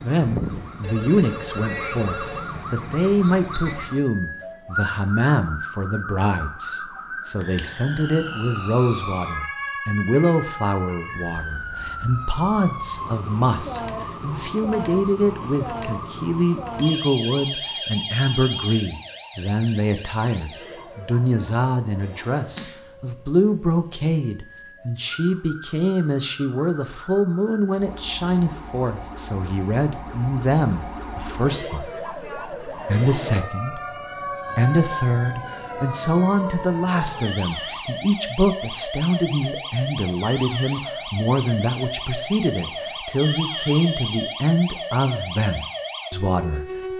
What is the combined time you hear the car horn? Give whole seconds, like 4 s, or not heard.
3 s.